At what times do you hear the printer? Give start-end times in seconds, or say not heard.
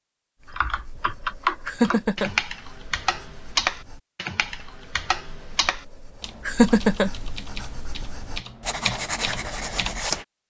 not heard.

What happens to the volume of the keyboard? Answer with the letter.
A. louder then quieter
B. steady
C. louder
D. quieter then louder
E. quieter
D.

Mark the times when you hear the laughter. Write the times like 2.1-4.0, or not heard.
1.6-2.3, 6.5-7.1.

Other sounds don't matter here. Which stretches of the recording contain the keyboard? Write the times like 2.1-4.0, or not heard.
0.5-10.2.